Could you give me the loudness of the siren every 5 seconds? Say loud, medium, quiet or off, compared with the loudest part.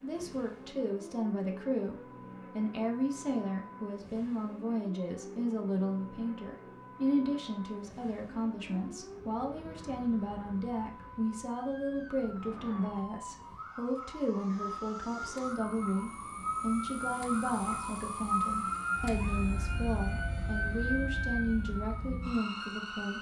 quiet, quiet, medium, loud, loud.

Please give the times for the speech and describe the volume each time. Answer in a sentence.
The speech can be heard from 0.0 to 23.1 s, at a steady volume.